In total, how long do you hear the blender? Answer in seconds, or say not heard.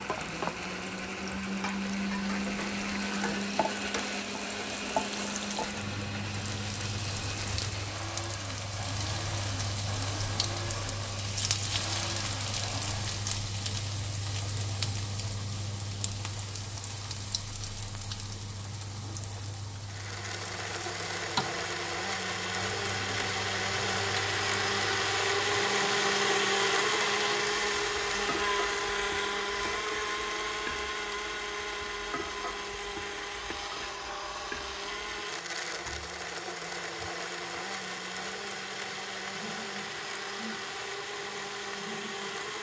36 s.